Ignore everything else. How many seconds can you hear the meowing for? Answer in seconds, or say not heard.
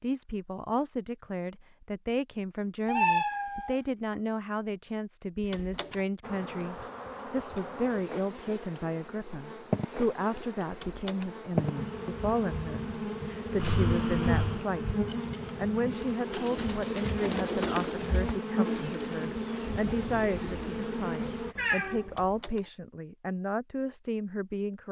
3 s.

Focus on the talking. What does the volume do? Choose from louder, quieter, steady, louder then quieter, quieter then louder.
steady.